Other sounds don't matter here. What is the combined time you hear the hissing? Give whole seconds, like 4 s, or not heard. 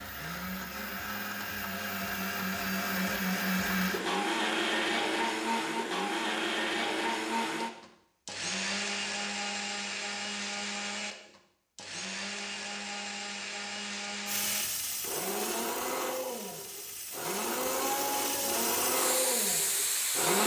6 s.